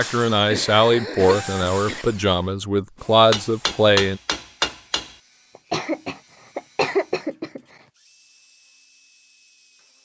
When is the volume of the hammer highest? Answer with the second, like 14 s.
4 s.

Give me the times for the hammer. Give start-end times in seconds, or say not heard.
3.3-5.2.